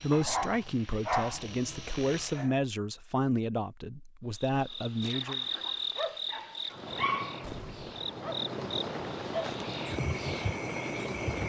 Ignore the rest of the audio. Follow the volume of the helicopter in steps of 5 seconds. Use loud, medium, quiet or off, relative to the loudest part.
medium, loud, loud.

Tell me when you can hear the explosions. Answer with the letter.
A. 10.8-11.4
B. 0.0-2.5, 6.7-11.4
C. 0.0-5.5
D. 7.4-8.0
D.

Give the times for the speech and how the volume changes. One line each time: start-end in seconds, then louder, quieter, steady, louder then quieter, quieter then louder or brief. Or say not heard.
0.0-5.5 steady.